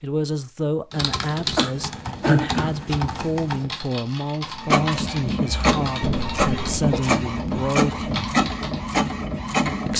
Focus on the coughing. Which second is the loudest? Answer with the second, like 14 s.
2 s.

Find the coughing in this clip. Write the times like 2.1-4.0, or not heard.
1.6-2.9, 6.0-7.0.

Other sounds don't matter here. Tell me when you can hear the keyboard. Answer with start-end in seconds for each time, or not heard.
0.9-8.8.